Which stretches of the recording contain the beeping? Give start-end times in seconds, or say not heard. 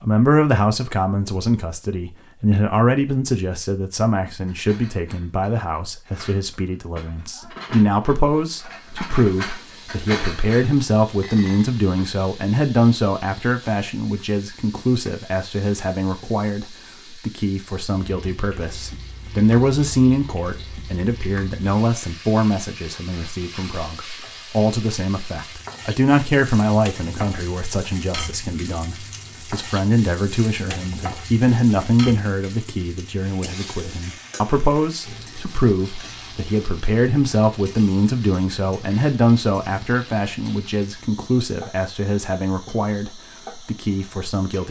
not heard.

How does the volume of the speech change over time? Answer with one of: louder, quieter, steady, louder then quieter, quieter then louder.
steady.